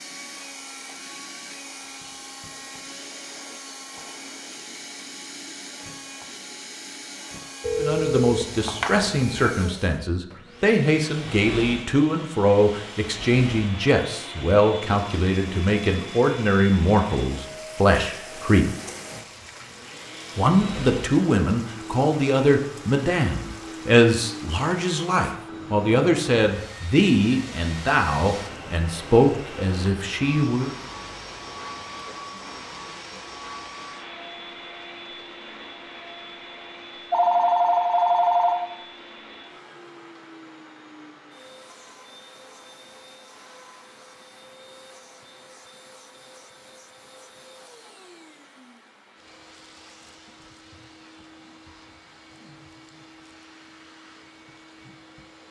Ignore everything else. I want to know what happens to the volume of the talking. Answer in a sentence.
The loudness of the talking stays about the same.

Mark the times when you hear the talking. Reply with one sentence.
You can hear the talking from 7.8 to 18.7 s and from 20.4 to 30.7 s.